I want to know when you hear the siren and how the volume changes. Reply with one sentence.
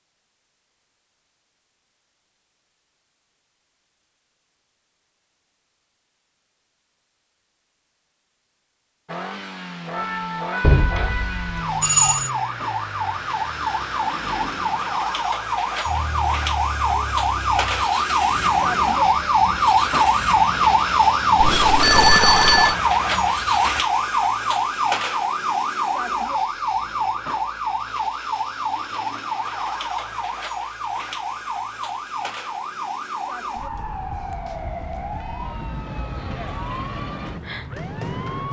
You can hear the siren from 9.9 to 38.4 s, getting louder then quieter.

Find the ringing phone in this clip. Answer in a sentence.
The ringing phone can be heard from 10.6 to 12.3 s and from 21.4 to 22.8 s.